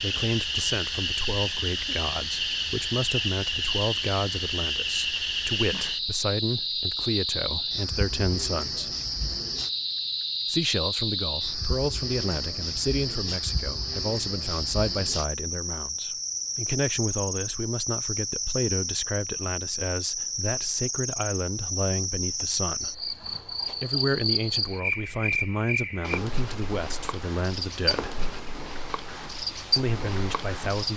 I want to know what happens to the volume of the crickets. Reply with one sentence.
The volume of the crickets stays about the same.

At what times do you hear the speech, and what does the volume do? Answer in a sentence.
The speech can be heard from 0.0 to 8.9 s, at a steady volume; from 10.4 to 28.2 s, at a steady volume; and briefly from 29.8 to 30.9 s.